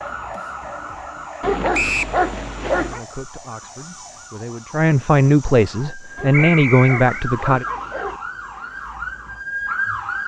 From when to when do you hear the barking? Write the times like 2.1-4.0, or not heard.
1.4-3.0, 6.2-8.2.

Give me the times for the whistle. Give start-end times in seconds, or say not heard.
1.7-2.1, 6.3-7.1.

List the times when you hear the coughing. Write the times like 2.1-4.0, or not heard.
not heard.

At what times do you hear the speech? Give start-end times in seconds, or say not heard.
2.8-7.7.